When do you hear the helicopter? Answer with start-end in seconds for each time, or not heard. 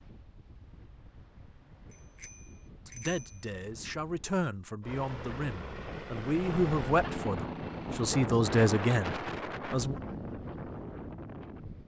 4.8-8.2.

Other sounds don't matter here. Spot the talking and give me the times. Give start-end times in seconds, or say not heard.
2.9-9.9.